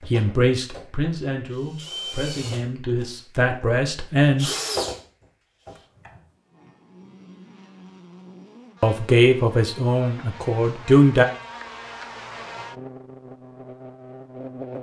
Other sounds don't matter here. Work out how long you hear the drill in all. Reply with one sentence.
The drill can be heard for 6 seconds in total.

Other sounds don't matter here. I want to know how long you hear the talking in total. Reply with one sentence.
The talking can be heard for 7 seconds in total.